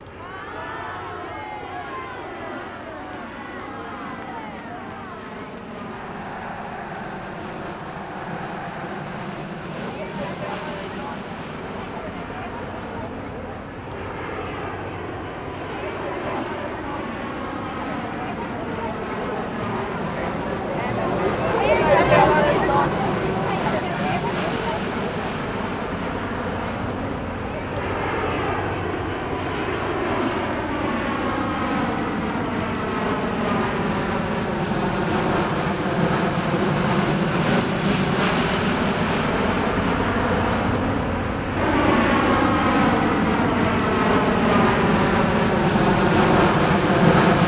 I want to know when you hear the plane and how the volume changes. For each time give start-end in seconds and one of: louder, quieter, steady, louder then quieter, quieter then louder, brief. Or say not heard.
0.0-47.4 louder.